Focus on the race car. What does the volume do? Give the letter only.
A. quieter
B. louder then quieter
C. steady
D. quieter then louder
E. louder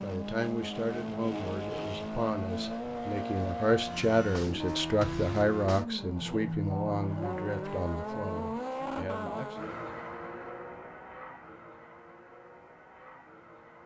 A.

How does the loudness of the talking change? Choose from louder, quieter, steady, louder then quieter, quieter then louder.
louder then quieter.